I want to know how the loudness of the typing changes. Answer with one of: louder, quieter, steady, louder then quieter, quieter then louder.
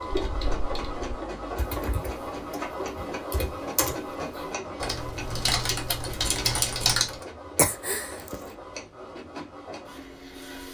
louder.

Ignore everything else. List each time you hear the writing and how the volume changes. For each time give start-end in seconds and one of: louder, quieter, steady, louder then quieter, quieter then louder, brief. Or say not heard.
not heard.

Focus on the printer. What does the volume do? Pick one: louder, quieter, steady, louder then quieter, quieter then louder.
quieter.